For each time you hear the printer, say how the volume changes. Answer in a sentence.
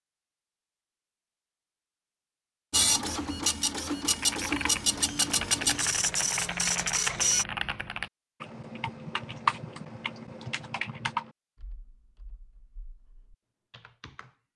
The printer can be heard from 2.7 to 7.5 s, at a steady volume.